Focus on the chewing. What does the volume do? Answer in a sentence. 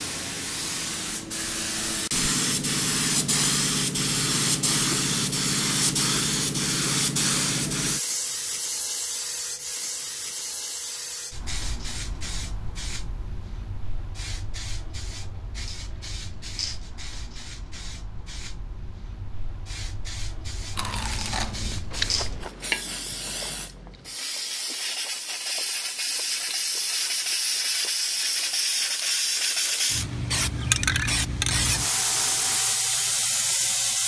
The loudness of the chewing goes down.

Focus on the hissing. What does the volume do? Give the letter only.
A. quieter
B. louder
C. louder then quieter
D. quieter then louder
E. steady
D.